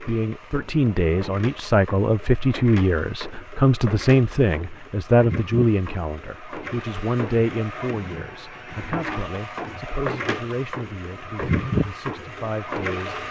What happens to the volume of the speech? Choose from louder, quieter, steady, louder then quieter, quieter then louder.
quieter.